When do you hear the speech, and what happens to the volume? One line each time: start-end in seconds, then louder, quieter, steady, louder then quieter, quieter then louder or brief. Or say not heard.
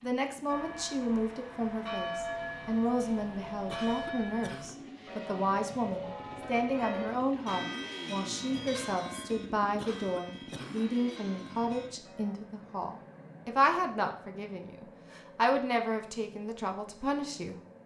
0.0-17.6 steady.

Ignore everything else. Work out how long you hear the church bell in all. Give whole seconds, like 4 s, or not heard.
12 s.